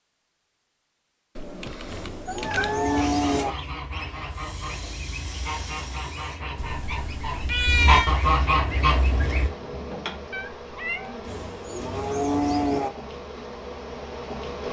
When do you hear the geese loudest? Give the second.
8 s.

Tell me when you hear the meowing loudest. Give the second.
8 s.